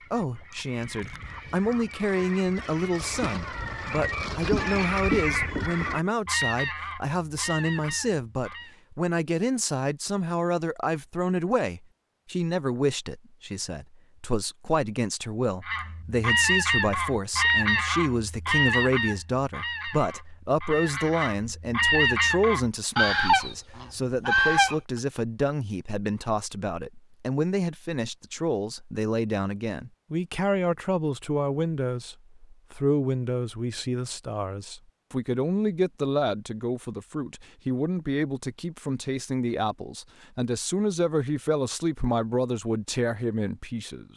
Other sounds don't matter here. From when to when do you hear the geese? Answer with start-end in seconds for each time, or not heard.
0.0-8.8, 15.7-24.8.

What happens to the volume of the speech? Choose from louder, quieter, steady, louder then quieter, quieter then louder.
steady.